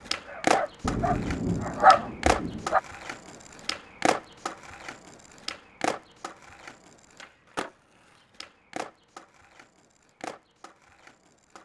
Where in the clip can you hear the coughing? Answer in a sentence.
You can't hear the coughing here.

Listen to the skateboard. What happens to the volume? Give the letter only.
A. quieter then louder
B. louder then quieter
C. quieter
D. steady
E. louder
C.